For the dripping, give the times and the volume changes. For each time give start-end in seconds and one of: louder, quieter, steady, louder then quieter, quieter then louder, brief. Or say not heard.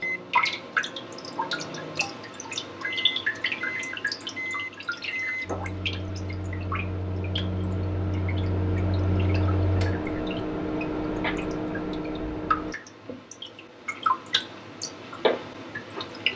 0.0-16.3 quieter then louder.